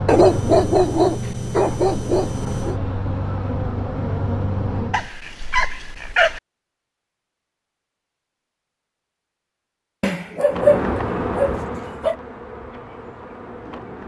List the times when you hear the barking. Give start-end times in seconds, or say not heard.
0.1-2.8, 4.9-6.4, 10.0-12.2.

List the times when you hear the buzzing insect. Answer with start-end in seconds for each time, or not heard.
0.0-5.1, 10.4-14.0.